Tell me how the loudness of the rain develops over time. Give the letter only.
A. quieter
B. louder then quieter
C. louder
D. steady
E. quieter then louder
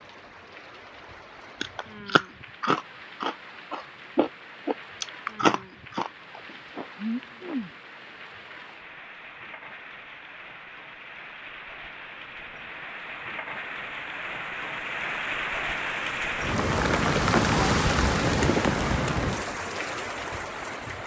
C.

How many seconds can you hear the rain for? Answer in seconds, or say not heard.
21 s.